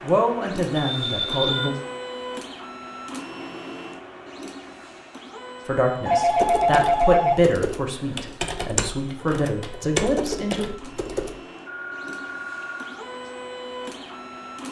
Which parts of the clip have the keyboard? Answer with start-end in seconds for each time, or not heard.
6.2-11.3.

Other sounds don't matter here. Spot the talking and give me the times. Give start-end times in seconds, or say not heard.
0.0-1.8, 5.7-10.7.